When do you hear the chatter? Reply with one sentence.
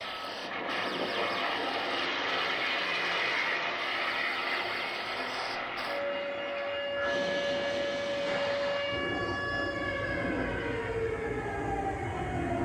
You can't hear the chatter here.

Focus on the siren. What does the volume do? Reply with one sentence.
The loudness of the siren goes up.